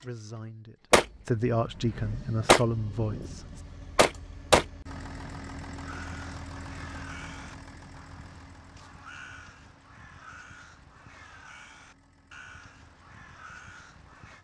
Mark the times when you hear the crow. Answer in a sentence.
The crow can be heard from 5.8 to 14.3 s.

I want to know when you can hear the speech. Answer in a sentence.
The speech can be heard from 0.0 to 3.6 s.